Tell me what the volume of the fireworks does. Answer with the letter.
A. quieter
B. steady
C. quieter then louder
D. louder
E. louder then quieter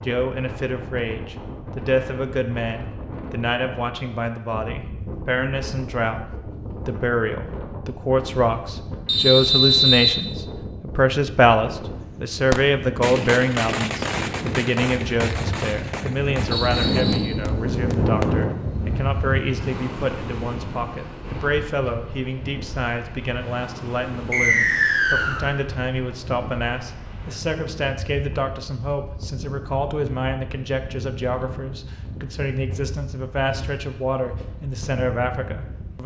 A.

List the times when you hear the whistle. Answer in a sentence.
The whistle can be heard from 9.1 to 10.1 s, from 16.5 to 17.4 s and from 24.3 to 25.4 s.